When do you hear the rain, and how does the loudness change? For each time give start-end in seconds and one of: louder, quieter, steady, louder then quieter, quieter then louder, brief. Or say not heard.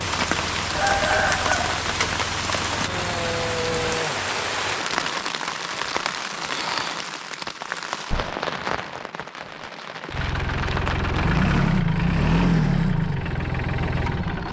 0.0-11.6 quieter.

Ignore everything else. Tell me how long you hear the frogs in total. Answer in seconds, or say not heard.
not heard.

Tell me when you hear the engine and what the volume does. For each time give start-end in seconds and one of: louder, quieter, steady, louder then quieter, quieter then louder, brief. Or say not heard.
0.0-4.0 steady
10.1-14.4 louder then quieter.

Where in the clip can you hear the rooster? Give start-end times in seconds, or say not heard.
0.7-1.8.